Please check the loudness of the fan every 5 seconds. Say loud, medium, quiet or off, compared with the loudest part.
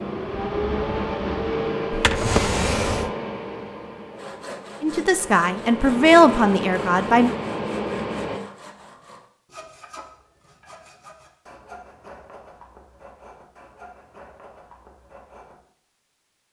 loud, loud, off, off.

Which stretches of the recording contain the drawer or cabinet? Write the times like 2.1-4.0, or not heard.
1.9-3.1.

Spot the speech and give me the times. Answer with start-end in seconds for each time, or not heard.
4.8-7.3.